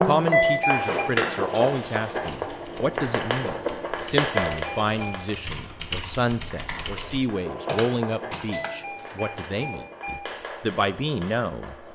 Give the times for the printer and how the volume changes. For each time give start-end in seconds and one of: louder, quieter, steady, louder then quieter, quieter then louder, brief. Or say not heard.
not heard.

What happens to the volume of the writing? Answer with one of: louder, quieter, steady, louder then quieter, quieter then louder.
quieter.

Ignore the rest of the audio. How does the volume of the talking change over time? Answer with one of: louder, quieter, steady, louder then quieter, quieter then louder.
steady.